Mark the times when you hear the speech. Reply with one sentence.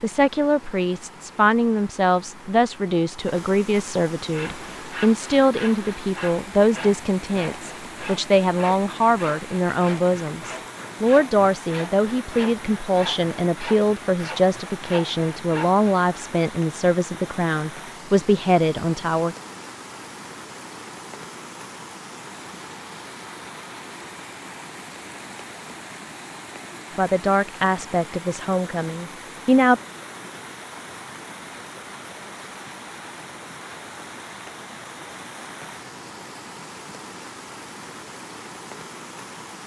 You can hear the speech from 0.0 to 19.4 s and from 26.9 to 29.8 s.